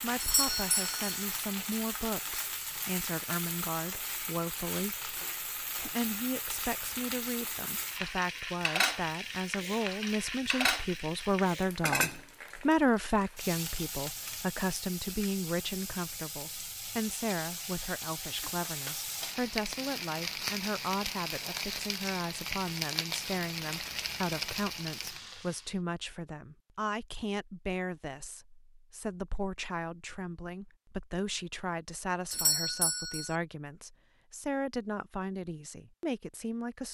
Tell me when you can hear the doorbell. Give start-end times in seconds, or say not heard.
0.2-1.2, 32.3-33.4.